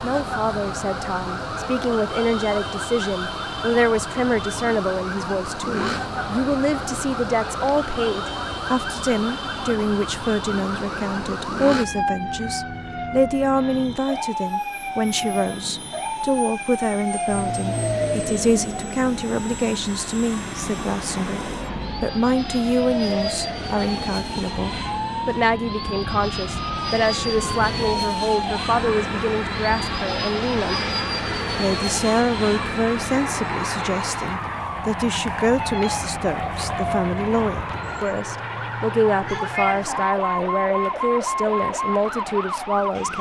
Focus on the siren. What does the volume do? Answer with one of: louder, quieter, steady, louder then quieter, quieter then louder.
steady.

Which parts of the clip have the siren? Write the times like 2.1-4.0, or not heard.
0.0-43.1.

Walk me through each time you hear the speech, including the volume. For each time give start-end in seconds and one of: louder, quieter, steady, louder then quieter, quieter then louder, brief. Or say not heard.
0.0-43.1 steady.